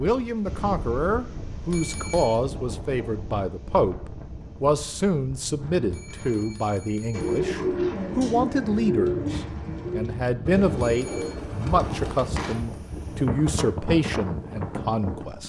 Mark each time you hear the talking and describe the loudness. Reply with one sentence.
You can hear the talking from 0.0 to 15.4 s, at a steady volume.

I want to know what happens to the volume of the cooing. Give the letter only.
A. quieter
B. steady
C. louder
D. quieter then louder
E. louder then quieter
A.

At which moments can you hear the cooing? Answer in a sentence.
You can hear the cooing from 7.1 to 12.6 s.